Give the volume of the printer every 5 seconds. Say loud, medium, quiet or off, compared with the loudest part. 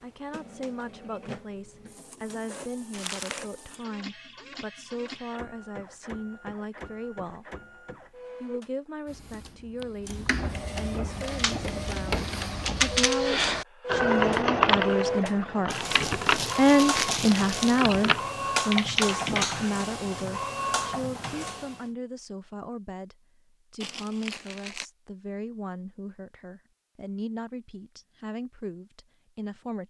quiet, quiet, loud, loud, loud, off.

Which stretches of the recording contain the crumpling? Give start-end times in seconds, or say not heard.
2.9-3.5, 15.7-17.9, 23.8-24.9.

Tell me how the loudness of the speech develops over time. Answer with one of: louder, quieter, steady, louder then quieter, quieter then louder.
louder then quieter.